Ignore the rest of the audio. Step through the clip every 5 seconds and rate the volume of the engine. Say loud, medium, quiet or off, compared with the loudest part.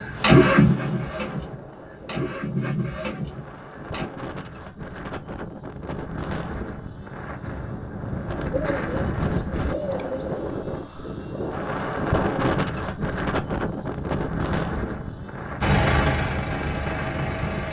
loud, off, off, loud.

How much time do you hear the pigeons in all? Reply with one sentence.
The pigeons can be heard for 2 seconds in total.